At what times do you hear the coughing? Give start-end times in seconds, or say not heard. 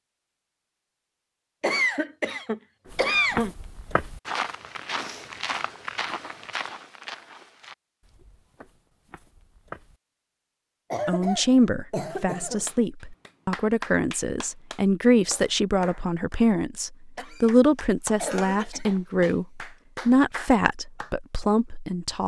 1.6-3.5, 10.9-12.7, 17.1-19.1.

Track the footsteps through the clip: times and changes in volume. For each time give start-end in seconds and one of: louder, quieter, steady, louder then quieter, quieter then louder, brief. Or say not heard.
2.9-10.0 quieter.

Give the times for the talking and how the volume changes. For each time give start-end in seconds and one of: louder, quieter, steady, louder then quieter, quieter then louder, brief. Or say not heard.
11.1-22.2 steady.